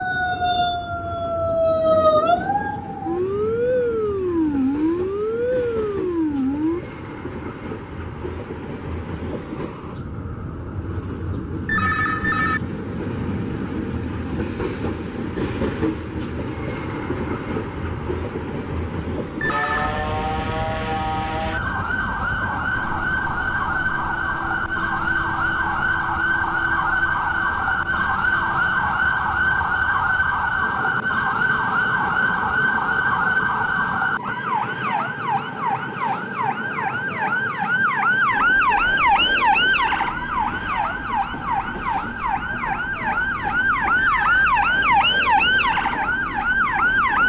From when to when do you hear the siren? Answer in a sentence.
The siren can be heard from 0.0 to 6.8 s and from 19.4 to 47.2 s.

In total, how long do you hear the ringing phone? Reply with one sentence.
You can hear the ringing phone for 2 seconds altogether.